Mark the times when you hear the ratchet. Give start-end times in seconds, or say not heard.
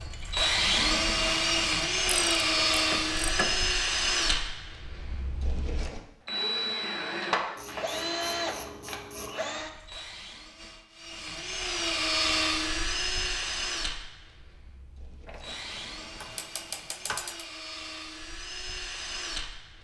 2.0-3.6, 7.5-9.4, 15.2-17.4.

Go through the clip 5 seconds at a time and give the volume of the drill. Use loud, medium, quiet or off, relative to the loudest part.
loud, medium, medium, quiet.